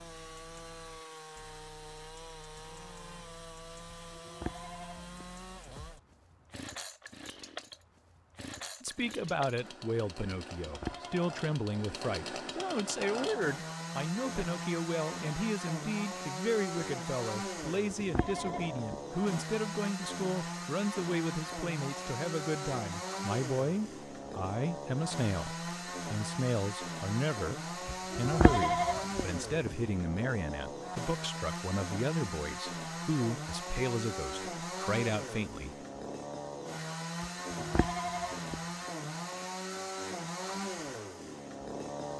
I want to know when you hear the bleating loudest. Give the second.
29 s.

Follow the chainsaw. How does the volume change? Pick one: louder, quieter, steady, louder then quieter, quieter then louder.
louder.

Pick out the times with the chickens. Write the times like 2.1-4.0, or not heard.
not heard.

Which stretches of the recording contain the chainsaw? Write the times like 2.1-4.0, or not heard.
0.0-42.1.